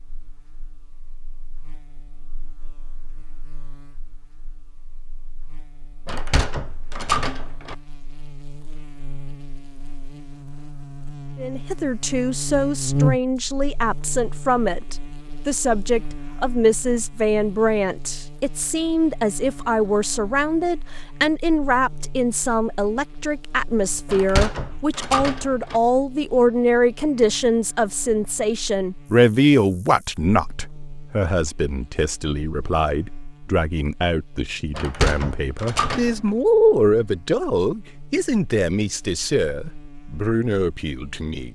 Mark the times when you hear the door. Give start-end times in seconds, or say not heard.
6.0-7.8, 24.1-25.8, 34.8-36.3.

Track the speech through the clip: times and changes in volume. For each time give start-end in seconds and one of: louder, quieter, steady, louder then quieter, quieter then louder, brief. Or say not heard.
11.3-41.5 steady.